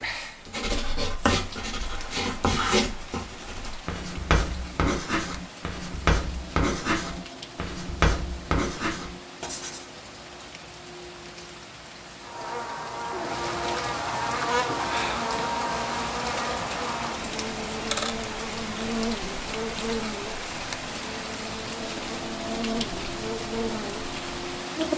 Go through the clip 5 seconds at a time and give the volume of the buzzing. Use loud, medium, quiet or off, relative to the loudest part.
off, off, loud, loud, loud.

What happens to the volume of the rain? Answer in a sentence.
The volume of the rain goes up.